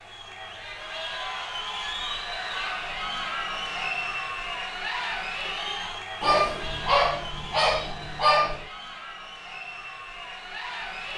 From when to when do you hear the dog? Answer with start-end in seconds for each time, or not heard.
6.2-8.7.